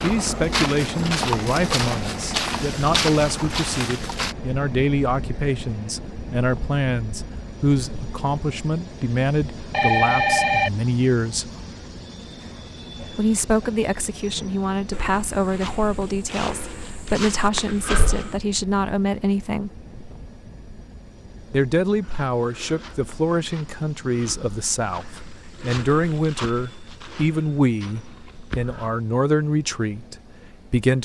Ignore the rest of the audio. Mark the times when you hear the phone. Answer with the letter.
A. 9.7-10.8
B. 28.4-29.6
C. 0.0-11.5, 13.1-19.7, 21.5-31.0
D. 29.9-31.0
A.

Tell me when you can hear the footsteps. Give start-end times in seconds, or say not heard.
0.0-4.3, 14.9-18.4, 22.0-28.9.